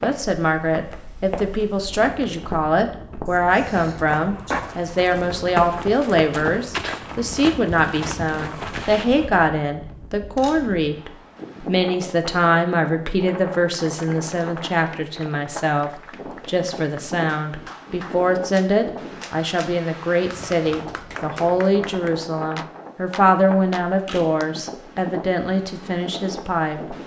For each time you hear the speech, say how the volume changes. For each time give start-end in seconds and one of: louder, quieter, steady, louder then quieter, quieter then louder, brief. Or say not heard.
0.0-27.0 steady.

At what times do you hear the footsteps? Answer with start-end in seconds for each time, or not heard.
0.0-9.3.